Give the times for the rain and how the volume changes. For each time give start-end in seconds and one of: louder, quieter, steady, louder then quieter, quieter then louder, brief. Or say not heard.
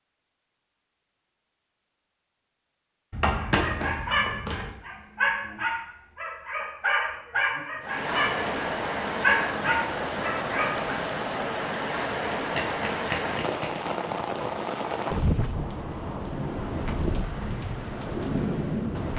7.8-19.1 steady.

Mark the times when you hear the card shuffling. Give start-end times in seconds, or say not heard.
3.1-4.7, 12.5-13.9.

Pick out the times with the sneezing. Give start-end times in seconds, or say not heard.
not heard.